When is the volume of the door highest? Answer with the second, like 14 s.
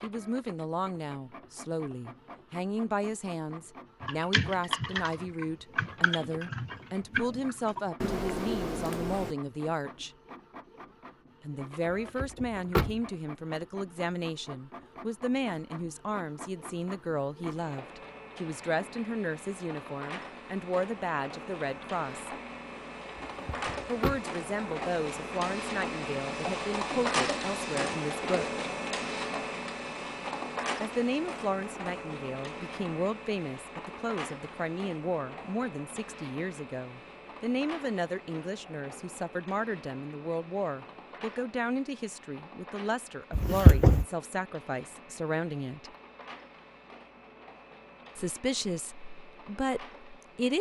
44 s.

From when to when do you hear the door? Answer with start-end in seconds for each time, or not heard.
12.2-13.0, 23.1-24.2, 43.4-44.0.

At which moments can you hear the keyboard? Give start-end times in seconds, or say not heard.
4.0-9.3.